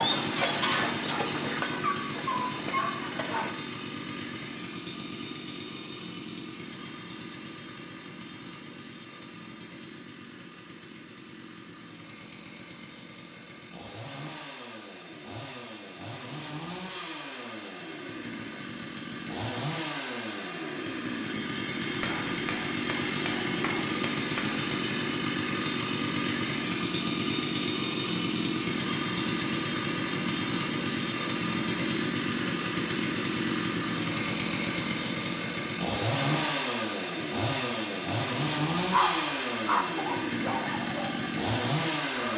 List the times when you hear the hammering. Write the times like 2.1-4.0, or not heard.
22.0-24.7.